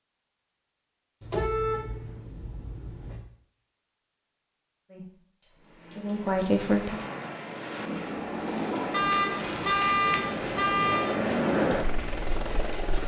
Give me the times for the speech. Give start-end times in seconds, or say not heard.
4.9-7.0.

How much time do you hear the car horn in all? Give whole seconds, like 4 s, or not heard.
4 s.